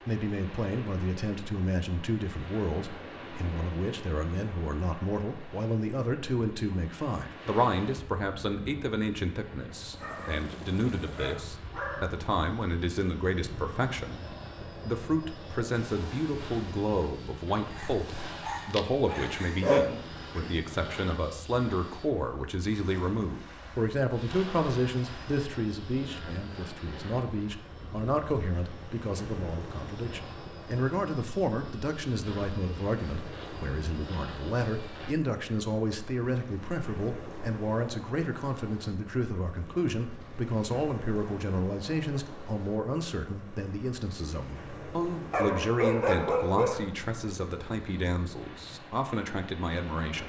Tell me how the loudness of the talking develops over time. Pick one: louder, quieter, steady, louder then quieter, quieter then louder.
steady.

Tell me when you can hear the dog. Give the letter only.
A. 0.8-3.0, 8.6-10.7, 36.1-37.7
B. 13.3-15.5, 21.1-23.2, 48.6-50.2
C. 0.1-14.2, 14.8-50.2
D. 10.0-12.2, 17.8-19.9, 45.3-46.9
D.